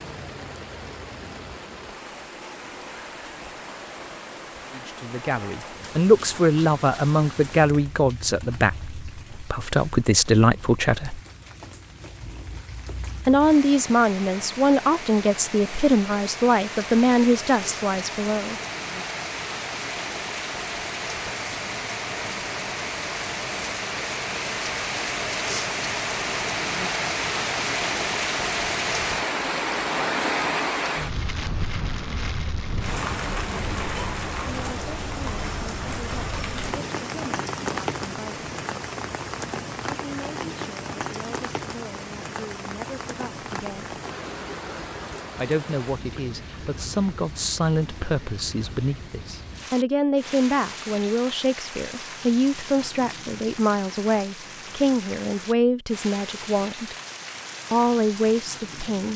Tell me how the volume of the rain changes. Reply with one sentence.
The loudness of the rain goes up, then down.